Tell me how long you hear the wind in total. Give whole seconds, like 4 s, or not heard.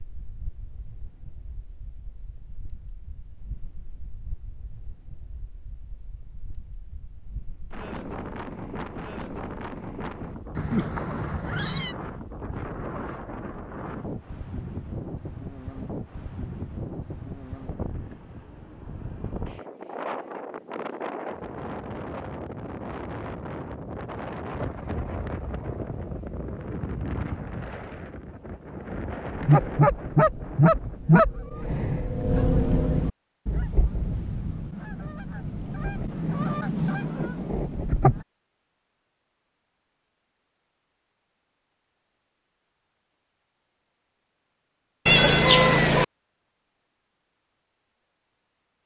31 s.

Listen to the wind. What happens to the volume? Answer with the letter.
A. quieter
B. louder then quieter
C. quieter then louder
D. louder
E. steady
D.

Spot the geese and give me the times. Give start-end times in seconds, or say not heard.
29.4-38.2.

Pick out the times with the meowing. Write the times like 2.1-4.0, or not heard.
10.6-11.9, 45.0-46.0.